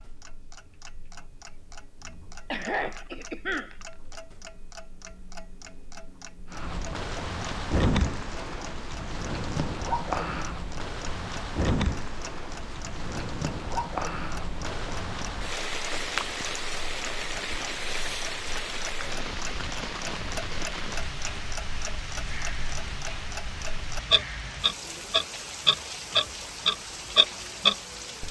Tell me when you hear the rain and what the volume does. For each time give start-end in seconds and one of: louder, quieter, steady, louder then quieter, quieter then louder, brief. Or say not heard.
6.5-28.2 quieter.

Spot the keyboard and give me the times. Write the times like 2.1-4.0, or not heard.
not heard.